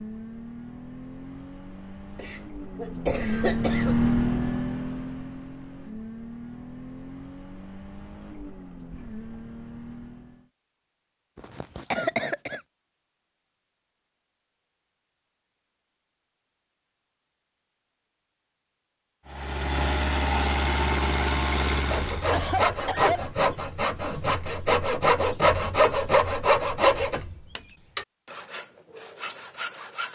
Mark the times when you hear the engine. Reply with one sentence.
You can hear the engine from 0.0 to 10.5 s and from 19.2 to 22.3 s.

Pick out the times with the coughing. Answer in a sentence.
You can hear the coughing from 2.1 to 4.0 s, from 11.3 to 12.6 s and from 22.3 to 23.2 s.